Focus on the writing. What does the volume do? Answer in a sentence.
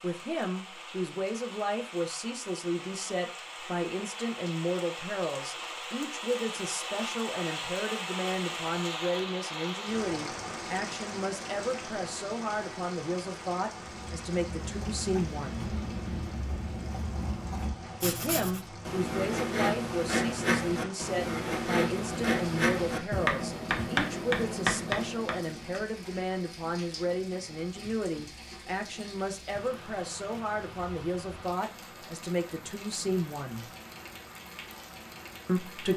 The volume of the writing goes up.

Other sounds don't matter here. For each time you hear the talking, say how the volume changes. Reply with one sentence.
You can hear the talking from 0.0 to 15.7 s, at a steady volume; from 18.0 to 33.6 s, at a steady volume; and briefly from 35.5 to 35.9 s.